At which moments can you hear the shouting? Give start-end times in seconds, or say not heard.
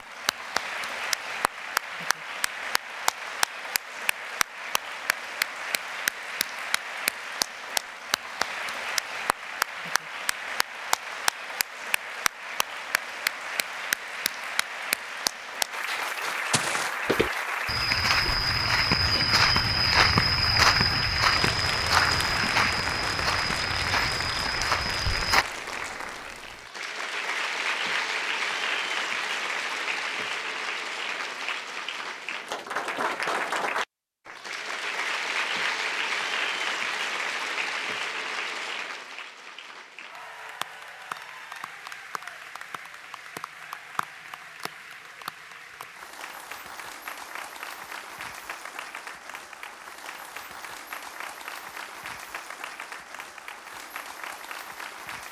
not heard.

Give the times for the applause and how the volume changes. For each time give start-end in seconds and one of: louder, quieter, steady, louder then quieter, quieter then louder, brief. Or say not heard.
0.0-55.2 quieter.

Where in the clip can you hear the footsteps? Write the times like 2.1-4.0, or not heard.
16.2-25.4.